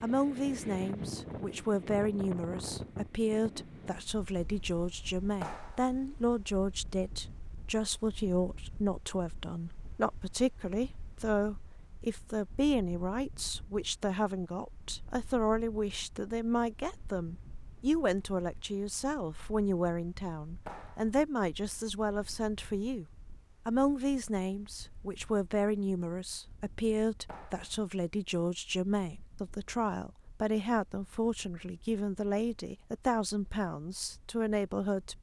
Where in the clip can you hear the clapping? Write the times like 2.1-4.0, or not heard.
5.4-5.8, 20.6-21.1, 27.2-27.7.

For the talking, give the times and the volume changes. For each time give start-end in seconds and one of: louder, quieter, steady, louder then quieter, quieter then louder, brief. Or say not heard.
0.0-35.1 steady.